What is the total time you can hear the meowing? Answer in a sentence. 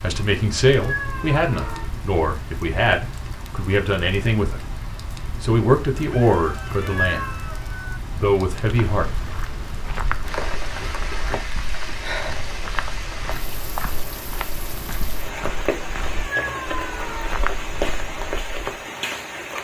You can hear the meowing for 3 seconds altogether.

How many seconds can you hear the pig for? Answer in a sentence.
You can't hear the pig here.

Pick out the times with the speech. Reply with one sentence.
You can hear the speech from 0.0 to 4.7 s, from 5.4 to 7.3 s and from 8.2 to 9.1 s.